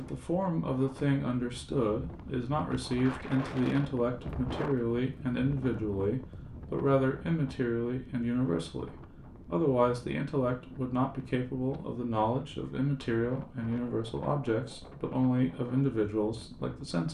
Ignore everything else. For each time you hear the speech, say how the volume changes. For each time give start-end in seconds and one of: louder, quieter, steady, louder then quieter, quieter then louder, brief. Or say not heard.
0.0-17.0 steady.